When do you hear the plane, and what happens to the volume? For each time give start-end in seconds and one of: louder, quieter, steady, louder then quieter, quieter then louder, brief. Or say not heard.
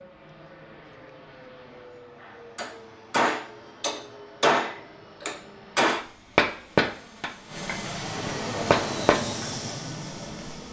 0.0-10.6 louder.